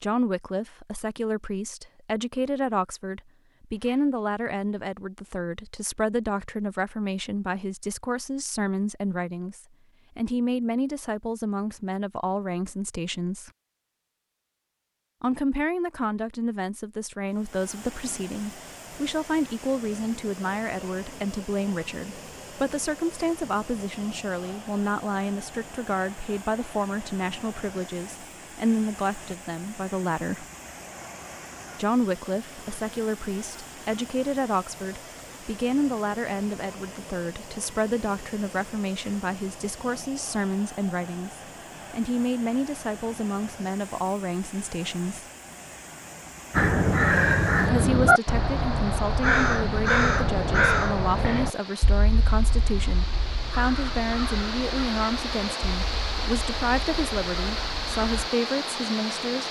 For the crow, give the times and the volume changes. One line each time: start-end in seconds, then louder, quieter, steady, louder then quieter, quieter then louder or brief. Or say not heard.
46.5-58.3 quieter.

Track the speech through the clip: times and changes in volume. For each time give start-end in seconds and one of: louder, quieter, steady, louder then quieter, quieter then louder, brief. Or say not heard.
0.0-13.5 steady
15.2-30.4 steady
31.8-45.3 steady
47.6-59.4 steady.